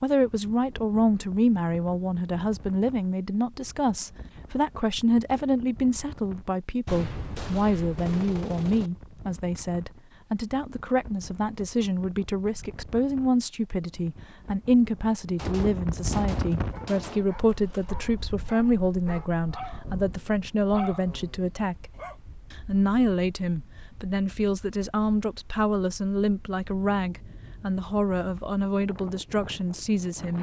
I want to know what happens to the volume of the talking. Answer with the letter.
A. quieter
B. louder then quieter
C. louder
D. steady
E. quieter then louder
D.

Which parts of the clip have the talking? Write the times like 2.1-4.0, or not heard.
0.0-21.9, 22.5-30.3.